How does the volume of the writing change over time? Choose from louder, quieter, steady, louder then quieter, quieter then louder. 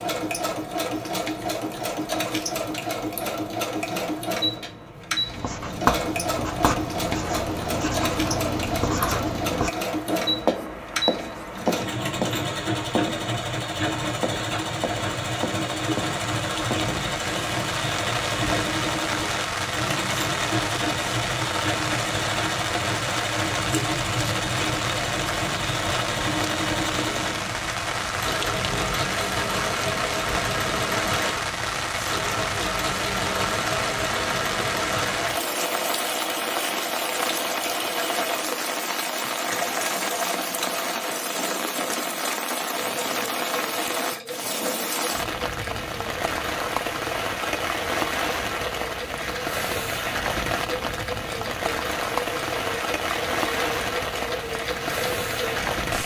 quieter.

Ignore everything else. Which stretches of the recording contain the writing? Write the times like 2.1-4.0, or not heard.
5.2-16.9.